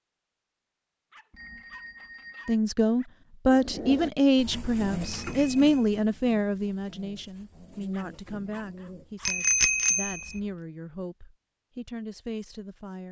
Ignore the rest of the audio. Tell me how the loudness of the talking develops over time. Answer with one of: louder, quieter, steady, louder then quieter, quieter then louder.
quieter.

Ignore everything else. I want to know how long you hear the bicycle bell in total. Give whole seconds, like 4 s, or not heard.
3 s.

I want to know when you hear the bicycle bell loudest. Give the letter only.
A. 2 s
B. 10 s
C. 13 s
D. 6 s
B.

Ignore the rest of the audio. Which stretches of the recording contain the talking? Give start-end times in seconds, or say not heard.
2.5-13.0.